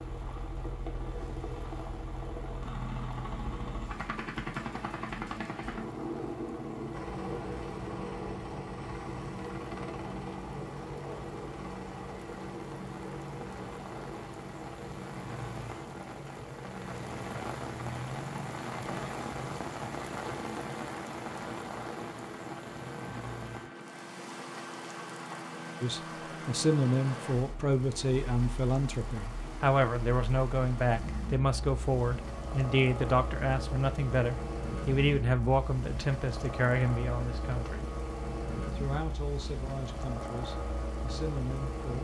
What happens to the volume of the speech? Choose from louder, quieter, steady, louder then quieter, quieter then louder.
quieter.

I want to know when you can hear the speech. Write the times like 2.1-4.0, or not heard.
25.8-41.9.